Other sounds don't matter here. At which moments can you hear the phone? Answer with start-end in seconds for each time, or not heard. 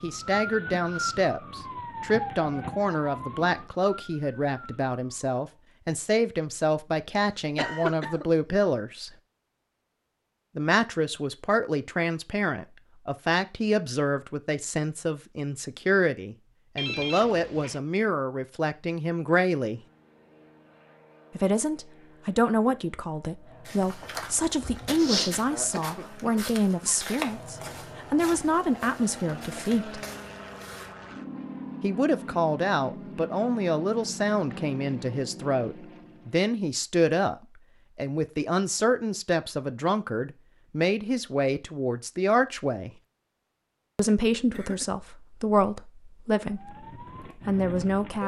16.8-17.8.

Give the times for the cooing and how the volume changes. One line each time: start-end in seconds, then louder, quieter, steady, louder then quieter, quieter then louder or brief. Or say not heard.
not heard.